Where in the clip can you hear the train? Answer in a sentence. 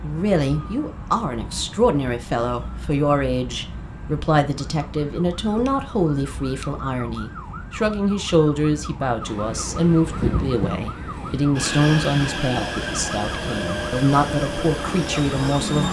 The train can be heard from 9.2 to 15.8 s.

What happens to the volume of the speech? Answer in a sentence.
The loudness of the speech stays about the same.